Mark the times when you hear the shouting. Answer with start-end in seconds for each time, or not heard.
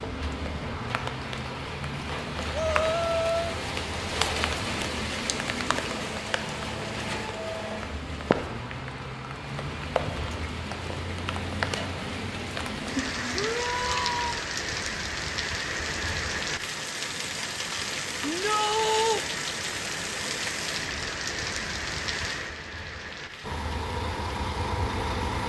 2.5-3.5, 13.3-14.4, 18.2-19.2.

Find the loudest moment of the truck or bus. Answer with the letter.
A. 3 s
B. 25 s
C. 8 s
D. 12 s
B.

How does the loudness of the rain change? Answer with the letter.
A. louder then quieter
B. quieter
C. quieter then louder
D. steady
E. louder
D.